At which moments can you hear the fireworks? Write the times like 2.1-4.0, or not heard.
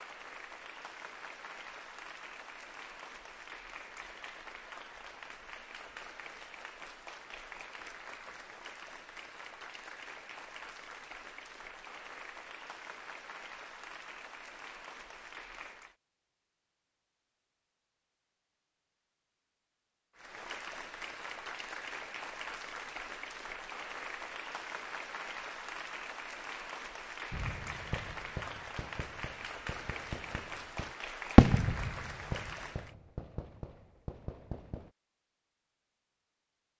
27.3-34.9.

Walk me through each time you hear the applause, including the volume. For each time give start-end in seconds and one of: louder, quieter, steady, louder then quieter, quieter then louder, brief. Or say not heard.
0.0-15.9 steady
20.1-33.0 steady.